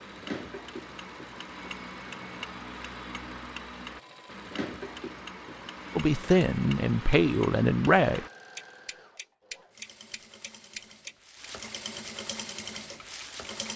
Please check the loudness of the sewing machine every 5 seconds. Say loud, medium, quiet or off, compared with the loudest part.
medium, medium, loud.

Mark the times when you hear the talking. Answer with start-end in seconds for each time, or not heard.
6.0-8.2.